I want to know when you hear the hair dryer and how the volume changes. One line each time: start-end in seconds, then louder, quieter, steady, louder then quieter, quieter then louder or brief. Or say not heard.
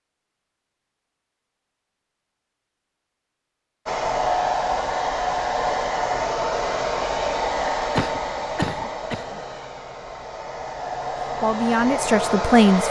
3.9-12.8 quieter then louder.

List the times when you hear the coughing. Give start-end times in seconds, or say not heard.
7.9-9.4.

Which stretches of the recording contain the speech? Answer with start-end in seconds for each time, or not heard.
11.4-12.8.